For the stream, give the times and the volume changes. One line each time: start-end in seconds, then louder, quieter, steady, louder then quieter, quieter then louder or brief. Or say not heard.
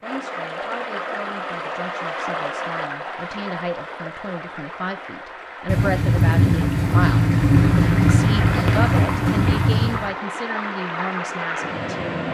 0.0-12.2 quieter then louder.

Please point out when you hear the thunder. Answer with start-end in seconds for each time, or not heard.
5.7-10.1.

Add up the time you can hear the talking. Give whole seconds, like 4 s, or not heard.
12 s.